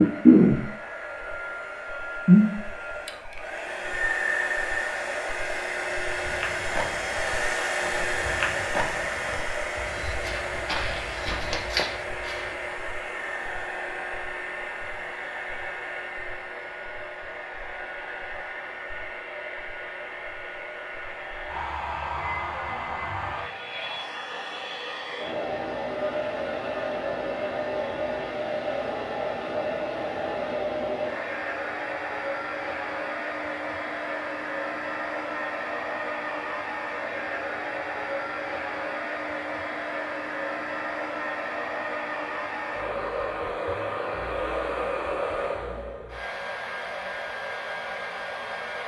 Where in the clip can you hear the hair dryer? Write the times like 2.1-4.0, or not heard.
0.0-48.8.